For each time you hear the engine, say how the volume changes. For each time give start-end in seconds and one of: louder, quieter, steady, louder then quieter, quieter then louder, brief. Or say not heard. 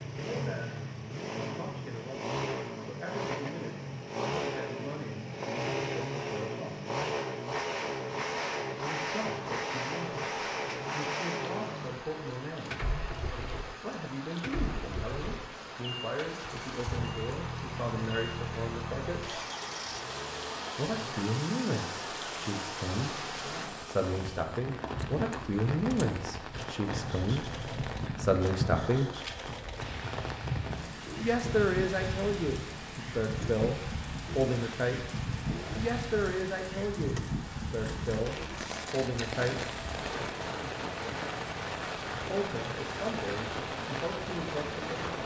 0.0-45.1 quieter.